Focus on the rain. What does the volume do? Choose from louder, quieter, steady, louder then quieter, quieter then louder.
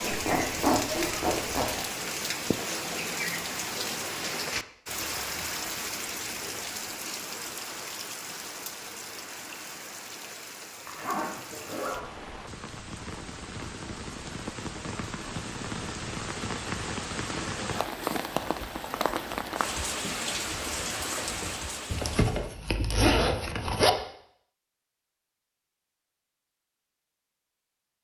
quieter then louder.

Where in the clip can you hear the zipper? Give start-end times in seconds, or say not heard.
0.0-1.9, 10.8-12.0, 21.9-23.9.